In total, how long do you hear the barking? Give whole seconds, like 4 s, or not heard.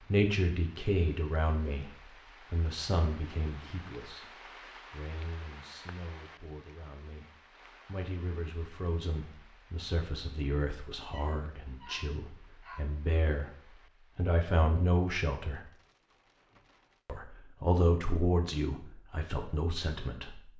2 s.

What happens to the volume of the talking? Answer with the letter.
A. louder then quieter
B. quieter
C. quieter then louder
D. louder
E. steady
C.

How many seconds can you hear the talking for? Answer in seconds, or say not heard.
19 s.